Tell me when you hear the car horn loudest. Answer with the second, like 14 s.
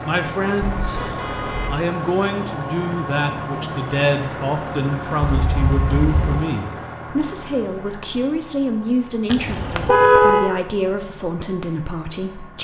10 s.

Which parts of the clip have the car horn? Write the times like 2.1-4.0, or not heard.
0.8-1.8, 5.2-6.2, 9.3-10.6.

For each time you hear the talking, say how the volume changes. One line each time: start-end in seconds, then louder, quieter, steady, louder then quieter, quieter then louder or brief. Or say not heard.
0.0-12.6 steady.